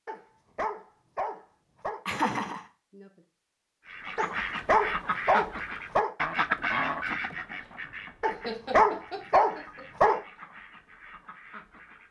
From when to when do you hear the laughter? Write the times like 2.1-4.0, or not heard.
2.0-3.0, 8.4-9.8.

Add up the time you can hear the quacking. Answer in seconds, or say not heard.
8 s.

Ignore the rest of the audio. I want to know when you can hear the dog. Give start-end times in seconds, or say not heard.
0.1-2.0, 4.2-6.2, 8.2-10.2.